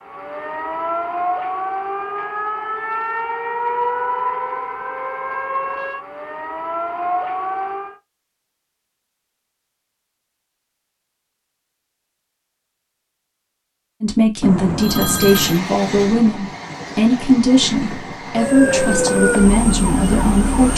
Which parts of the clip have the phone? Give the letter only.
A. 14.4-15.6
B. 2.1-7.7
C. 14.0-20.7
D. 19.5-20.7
A.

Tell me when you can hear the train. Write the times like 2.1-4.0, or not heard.
15.1-20.7.